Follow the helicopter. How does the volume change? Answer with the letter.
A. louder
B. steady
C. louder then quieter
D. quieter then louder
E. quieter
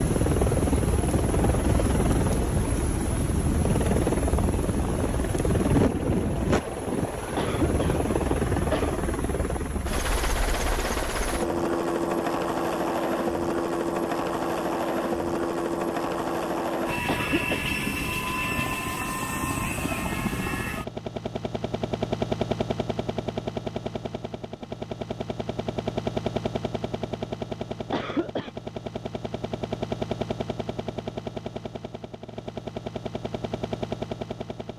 E.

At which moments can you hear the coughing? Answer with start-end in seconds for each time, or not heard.
7.3-8.9, 17.1-17.7, 27.9-28.5.